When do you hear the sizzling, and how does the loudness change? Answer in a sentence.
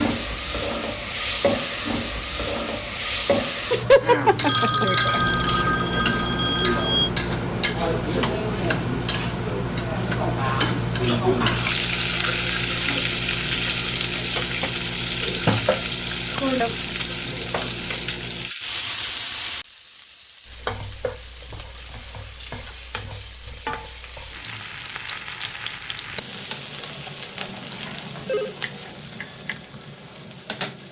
You can hear the sizzling from 0.0 to 30.8 s, getting quieter.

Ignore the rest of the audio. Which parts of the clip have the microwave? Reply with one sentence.
The microwave can be heard from 5.1 to 18.6 s.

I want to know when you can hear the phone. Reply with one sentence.
You can hear the phone from 4.4 to 7.1 s and from 27.5 to 28.6 s.